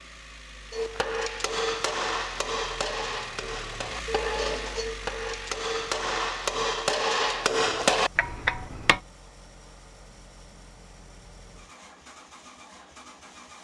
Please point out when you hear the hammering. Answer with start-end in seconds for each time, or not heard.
0.7-9.0.